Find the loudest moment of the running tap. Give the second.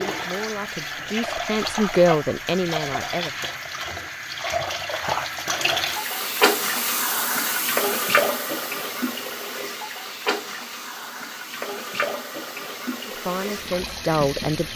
8 s.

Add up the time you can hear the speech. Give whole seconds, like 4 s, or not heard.
5 s.